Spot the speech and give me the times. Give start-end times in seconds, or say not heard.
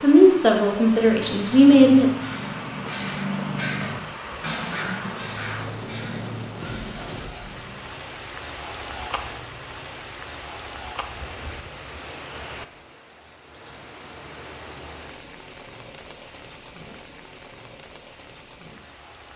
0.0-2.1.